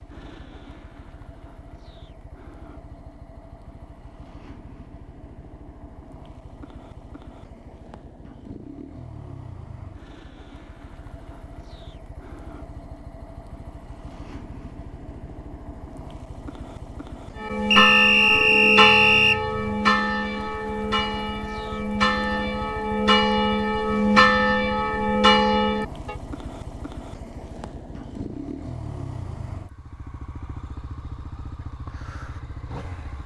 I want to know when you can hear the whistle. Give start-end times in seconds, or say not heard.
17.7-19.4.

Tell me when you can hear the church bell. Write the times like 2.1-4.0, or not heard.
17.4-26.1.